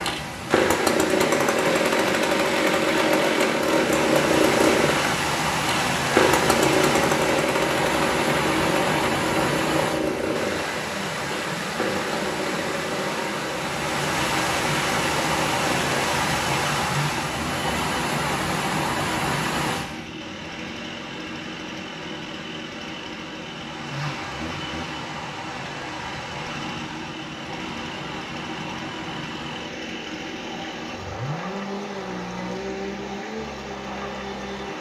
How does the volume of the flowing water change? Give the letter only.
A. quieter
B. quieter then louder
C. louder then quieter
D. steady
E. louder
A.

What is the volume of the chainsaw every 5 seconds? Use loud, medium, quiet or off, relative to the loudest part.
loud, loud, medium, medium, quiet, quiet, quiet.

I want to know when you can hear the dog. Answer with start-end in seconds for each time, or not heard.
not heard.